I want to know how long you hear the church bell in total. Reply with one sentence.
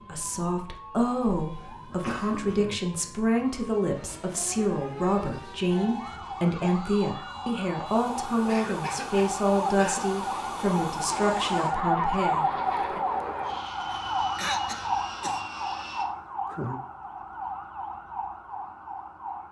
The church bell can't be heard in this clip.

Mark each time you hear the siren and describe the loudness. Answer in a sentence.
You can hear the siren from 0.0 to 19.4 s, getting louder then quieter.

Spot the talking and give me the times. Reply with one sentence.
The talking can be heard from 0.1 to 13.0 s.